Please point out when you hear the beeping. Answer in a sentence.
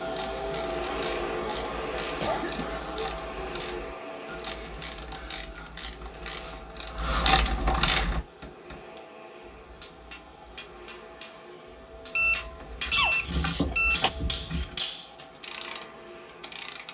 The beeping can be heard from 12.2 to 14.0 s.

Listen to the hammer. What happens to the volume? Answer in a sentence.
The loudness of the hammer goes up.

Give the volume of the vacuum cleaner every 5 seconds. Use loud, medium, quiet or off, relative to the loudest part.
loud, quiet, quiet, quiet.